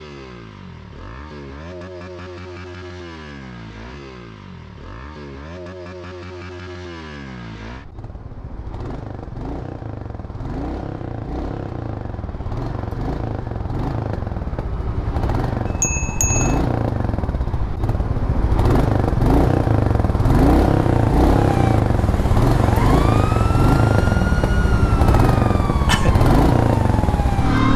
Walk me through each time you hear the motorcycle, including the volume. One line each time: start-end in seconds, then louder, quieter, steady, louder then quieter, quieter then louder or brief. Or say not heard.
0.0-27.7 louder.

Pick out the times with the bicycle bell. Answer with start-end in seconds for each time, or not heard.
15.7-16.6.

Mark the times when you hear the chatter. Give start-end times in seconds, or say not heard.
not heard.